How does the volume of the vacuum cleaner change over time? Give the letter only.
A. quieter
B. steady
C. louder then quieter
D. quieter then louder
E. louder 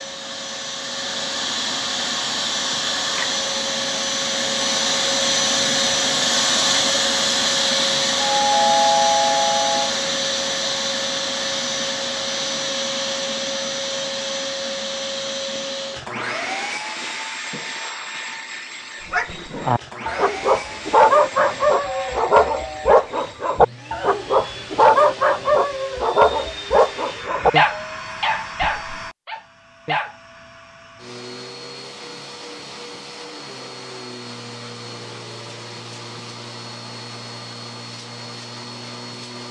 A.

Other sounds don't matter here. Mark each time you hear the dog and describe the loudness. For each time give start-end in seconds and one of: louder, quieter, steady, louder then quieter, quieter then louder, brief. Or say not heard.
19.1-30.1 quieter.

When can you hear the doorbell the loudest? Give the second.
9 s.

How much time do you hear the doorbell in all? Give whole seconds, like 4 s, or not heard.
3 s.